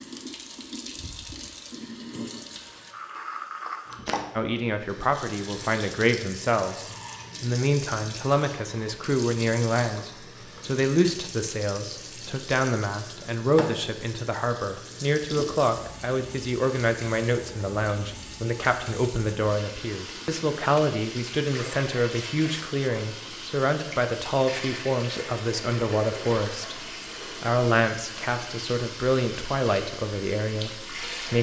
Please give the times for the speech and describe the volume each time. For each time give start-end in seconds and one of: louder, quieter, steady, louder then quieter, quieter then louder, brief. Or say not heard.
4.3-31.3 steady.